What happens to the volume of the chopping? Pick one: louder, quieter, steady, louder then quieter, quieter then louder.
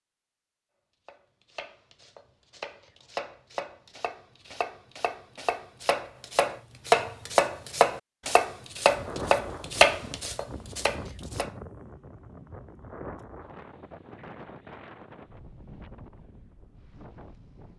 louder.